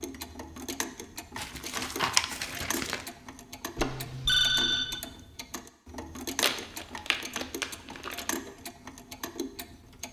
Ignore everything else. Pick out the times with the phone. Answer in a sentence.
The phone can be heard from 3.8 to 5.0 s.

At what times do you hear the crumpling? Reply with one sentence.
The crumpling can be heard from 1.4 to 3.0 s and from 6.4 to 8.2 s.